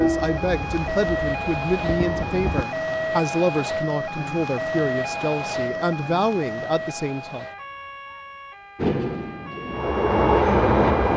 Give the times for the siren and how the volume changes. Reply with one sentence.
You can hear the siren from 0.0 to 11.1 s, getting quieter.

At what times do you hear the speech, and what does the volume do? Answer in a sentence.
The speech can be heard from 0.0 to 7.5 s, at a steady volume.